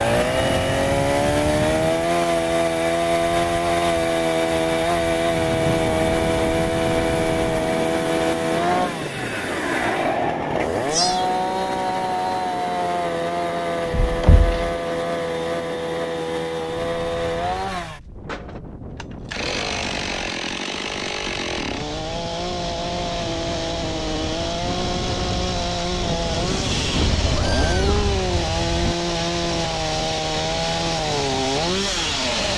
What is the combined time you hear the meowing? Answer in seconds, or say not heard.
3 s.